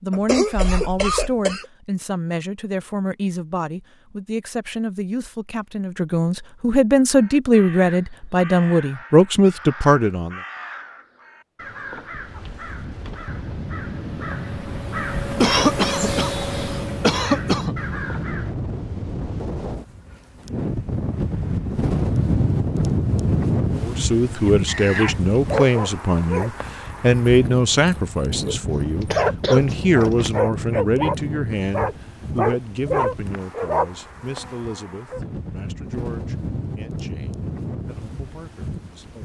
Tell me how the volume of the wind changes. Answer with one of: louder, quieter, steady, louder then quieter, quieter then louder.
louder then quieter.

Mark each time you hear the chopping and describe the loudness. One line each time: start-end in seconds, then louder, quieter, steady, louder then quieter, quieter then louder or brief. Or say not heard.
not heard.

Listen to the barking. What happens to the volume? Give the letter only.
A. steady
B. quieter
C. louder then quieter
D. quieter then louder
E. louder
D.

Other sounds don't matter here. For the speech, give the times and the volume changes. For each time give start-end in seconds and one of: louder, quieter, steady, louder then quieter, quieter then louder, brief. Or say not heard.
0.0-10.4 louder
23.8-39.2 quieter.